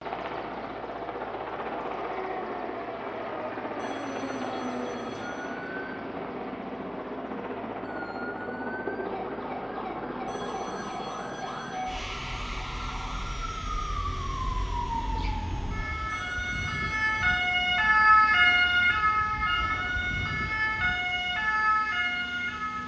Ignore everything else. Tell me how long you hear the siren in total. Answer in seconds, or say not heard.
19 s.